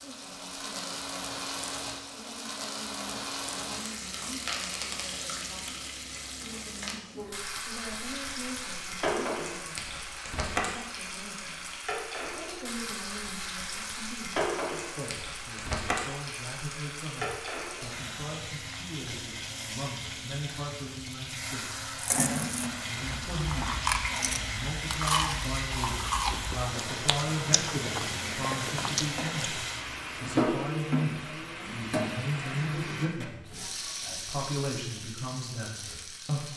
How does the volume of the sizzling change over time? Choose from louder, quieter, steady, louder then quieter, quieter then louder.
steady.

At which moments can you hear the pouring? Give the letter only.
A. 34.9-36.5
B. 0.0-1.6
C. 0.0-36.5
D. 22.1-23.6
D.